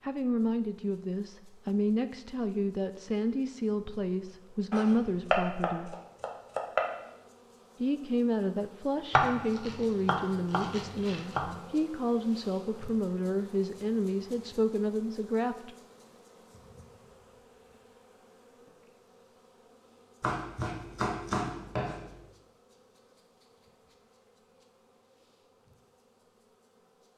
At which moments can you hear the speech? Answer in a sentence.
You can hear the speech from 0.0 to 6.0 s and from 7.8 to 15.7 s.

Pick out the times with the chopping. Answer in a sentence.
The chopping can be heard from 4.7 to 6.8 s, from 9.1 to 11.6 s and from 20.2 to 22.2 s.